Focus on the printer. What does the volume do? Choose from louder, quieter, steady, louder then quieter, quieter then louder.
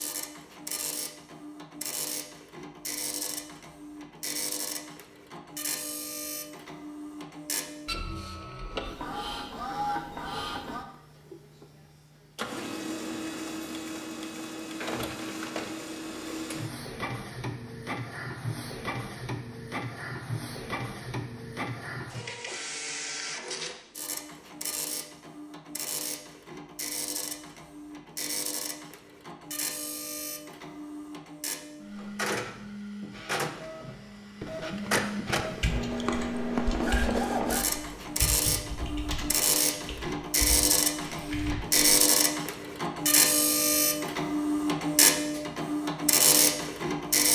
louder.